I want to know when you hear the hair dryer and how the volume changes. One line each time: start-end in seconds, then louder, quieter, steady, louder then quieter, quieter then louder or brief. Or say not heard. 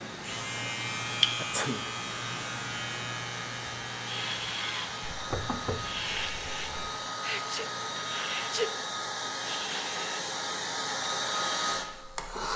0.0-12.5 louder.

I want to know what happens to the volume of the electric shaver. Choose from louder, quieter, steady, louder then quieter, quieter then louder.
quieter.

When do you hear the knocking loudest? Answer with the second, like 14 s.
5 s.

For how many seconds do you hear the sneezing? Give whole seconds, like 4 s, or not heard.
2 s.